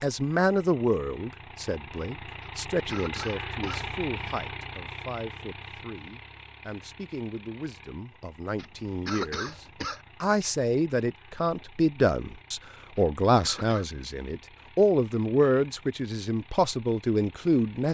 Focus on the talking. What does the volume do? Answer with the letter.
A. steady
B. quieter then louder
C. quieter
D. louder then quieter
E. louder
B.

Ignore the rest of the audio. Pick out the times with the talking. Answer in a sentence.
You can hear the talking from 0.0 to 17.8 s.